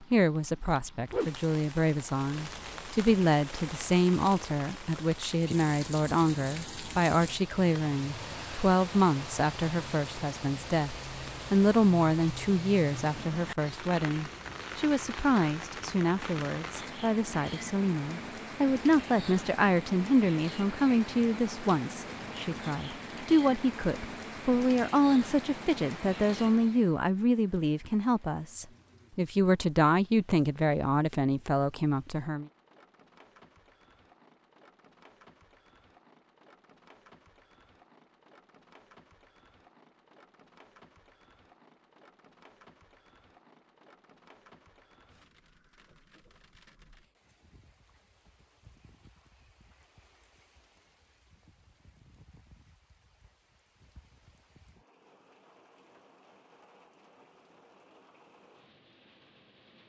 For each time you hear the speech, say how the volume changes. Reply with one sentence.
You can hear the speech from 0.0 to 32.5 s, at a steady volume.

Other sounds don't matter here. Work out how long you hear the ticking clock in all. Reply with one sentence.
The ticking clock can't be heard in this clip.